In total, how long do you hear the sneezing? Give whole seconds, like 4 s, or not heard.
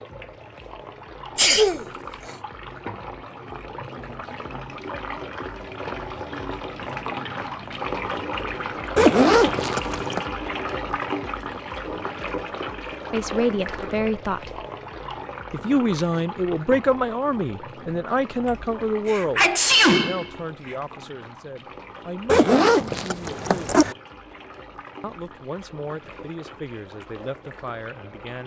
3 s.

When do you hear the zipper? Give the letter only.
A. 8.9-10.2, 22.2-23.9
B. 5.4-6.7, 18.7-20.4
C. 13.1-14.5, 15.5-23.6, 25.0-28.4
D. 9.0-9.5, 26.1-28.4
A.